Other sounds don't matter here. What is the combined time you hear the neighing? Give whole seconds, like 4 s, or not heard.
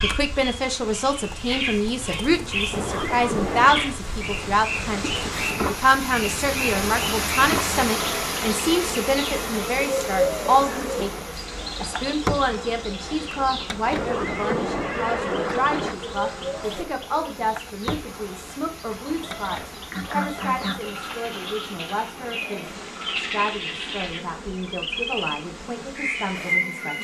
3 s.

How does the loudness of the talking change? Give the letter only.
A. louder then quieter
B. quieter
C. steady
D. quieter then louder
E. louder
B.